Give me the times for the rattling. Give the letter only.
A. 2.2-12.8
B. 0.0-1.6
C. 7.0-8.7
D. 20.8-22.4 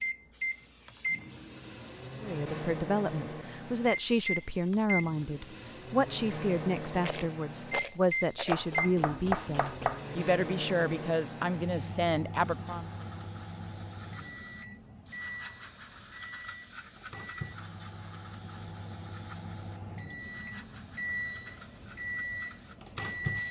C.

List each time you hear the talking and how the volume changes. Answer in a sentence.
You can hear the talking from 2.2 to 12.8 s, at a steady volume.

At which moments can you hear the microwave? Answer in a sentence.
The microwave can be heard from 0.0 to 23.4 s.